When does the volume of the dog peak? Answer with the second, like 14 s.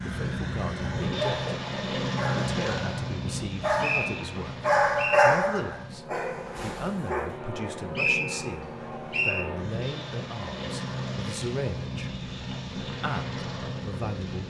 5 s.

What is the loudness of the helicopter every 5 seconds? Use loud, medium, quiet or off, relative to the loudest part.
loud, medium, loud.